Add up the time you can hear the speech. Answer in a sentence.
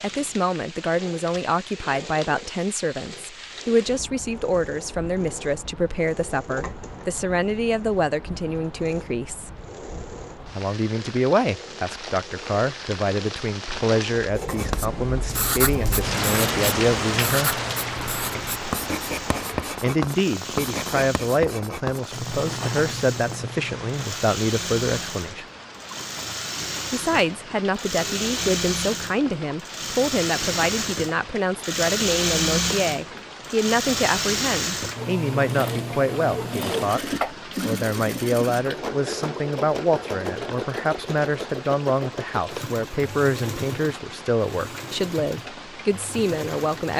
You can hear the speech for 42 seconds altogether.